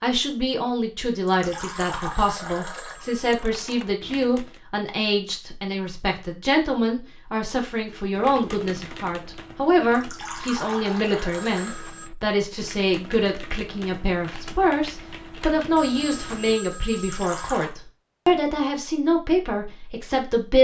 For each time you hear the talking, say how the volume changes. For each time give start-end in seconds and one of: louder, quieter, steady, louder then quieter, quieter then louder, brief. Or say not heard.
0.0-20.5 steady.